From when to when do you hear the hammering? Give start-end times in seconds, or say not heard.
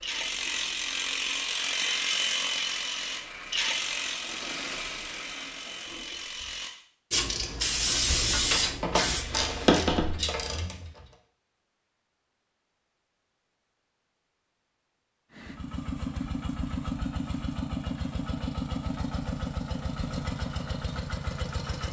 not heard.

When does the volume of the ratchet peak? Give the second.
10 s.